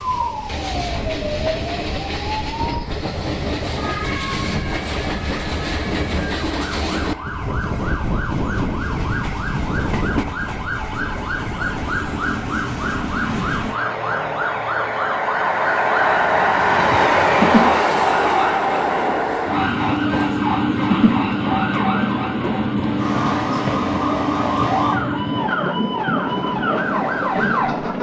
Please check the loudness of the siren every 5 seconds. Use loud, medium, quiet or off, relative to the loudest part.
medium, medium, loud, loud, loud, loud.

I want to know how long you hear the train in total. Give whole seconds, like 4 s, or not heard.
28 s.